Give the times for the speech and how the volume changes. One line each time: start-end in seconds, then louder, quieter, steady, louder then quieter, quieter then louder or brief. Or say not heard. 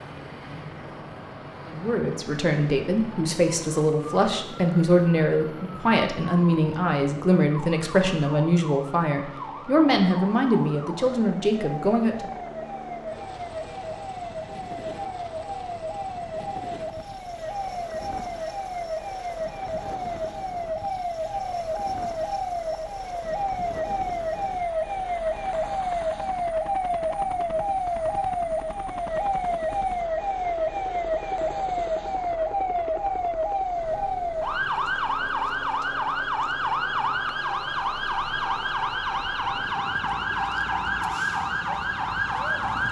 1.6-12.3 steady.